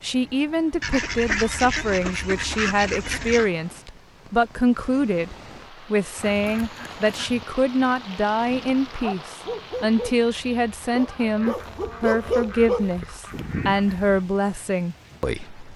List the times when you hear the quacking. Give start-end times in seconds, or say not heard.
0.8-3.5, 6.2-7.5, 11.4-14.1.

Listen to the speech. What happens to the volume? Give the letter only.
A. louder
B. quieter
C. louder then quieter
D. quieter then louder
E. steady
E.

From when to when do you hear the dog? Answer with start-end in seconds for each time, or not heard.
8.3-13.9.